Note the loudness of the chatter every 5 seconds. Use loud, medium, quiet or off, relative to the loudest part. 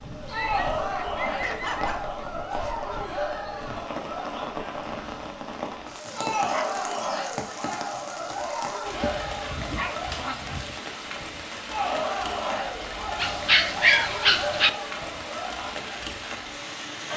loud, loud, loud, medium.